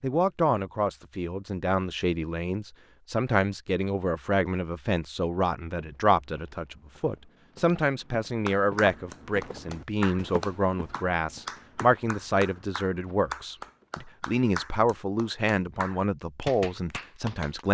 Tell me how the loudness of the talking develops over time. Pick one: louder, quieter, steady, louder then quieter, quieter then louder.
steady.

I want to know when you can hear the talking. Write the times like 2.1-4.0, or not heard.
0.0-17.6.